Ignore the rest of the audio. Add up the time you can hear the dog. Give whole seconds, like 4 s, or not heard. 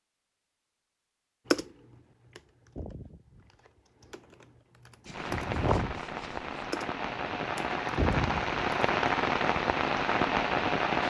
not heard.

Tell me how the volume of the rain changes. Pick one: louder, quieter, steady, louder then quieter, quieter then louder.
louder.